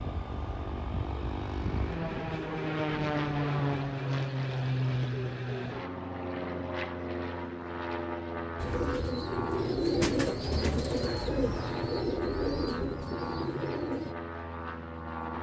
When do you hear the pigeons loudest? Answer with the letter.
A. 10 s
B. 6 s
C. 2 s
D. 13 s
A.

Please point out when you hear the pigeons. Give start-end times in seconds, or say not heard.
8.6-14.2.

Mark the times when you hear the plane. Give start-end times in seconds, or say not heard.
0.0-15.3.